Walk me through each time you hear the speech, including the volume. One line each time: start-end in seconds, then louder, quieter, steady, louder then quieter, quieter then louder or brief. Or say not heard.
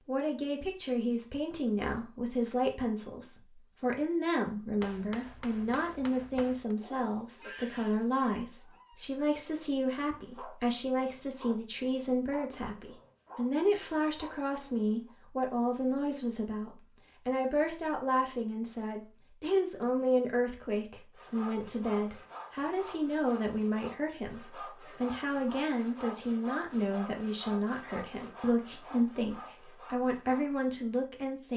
0.1-31.5 steady.